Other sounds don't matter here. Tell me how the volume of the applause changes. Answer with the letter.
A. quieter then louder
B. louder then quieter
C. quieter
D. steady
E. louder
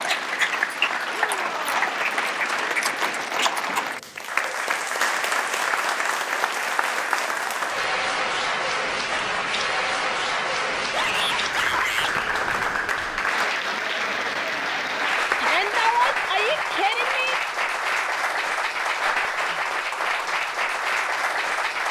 D.